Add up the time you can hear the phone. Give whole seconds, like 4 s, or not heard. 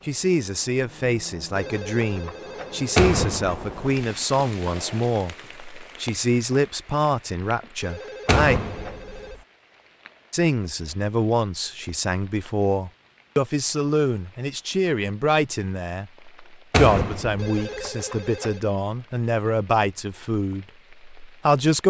5 s.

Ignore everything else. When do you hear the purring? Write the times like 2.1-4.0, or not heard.
not heard.